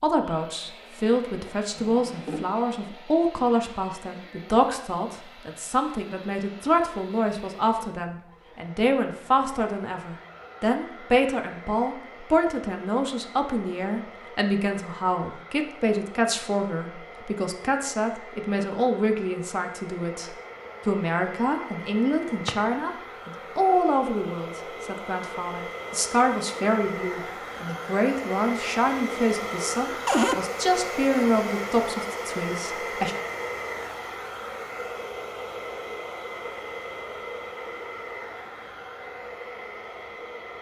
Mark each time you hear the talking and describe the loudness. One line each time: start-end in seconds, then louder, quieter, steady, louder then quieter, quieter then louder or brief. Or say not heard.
0.0-33.1 steady.